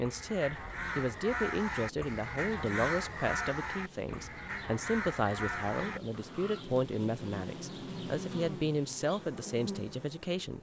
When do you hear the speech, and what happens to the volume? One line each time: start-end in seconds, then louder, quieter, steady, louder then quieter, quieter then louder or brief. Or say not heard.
0.0-10.5 steady.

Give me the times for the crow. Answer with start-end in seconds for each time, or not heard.
0.0-6.7.